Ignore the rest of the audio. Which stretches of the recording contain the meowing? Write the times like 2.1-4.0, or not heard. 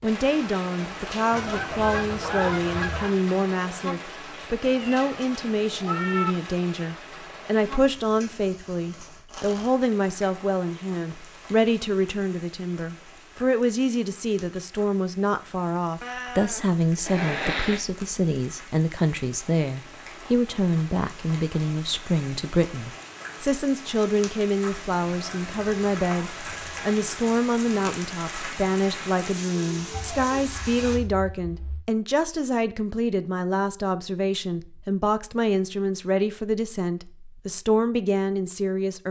4.7-6.3, 16.0-17.9, 29.9-31.9.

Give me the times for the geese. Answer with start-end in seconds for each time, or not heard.
1.3-3.1, 25.1-27.0.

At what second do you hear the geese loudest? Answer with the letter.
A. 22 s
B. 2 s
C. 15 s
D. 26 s
B.